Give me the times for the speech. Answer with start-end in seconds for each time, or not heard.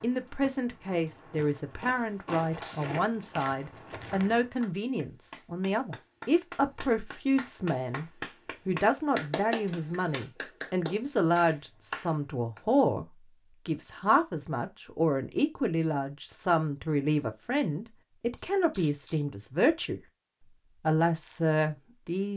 0.0-8.1, 8.7-13.1, 13.7-20.0, 20.8-22.3.